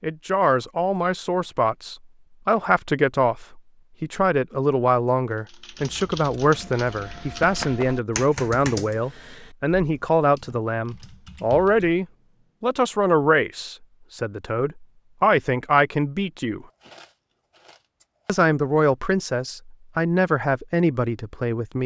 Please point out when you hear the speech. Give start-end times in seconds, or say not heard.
0.0-16.6, 18.2-21.8.